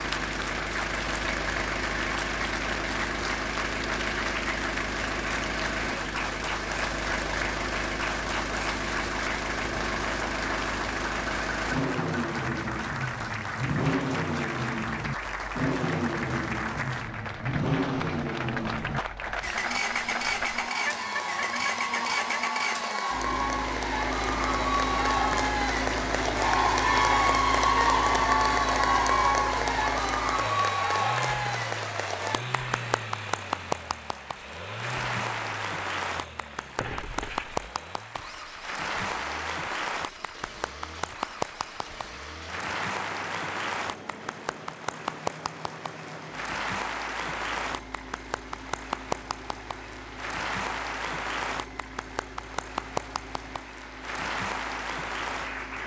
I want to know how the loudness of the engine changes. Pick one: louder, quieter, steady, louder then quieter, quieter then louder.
quieter.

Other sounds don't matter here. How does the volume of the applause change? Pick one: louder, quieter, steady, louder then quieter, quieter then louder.
louder then quieter.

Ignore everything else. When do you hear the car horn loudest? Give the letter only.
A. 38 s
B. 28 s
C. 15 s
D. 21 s
D.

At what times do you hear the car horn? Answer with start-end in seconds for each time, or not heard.
20.9-22.4, 36.8-37.6.